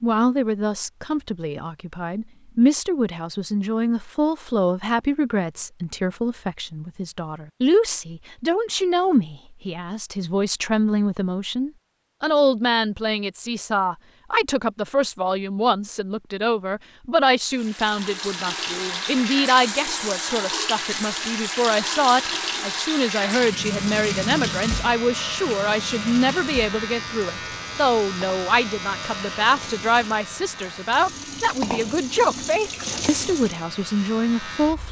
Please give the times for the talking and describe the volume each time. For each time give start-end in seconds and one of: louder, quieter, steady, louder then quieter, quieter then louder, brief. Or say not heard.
0.0-34.8 steady.